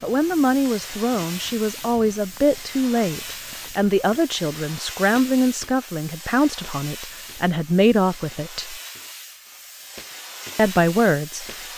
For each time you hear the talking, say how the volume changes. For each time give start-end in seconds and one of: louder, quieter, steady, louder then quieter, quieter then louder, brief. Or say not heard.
0.0-8.8 steady
10.6-11.4 brief.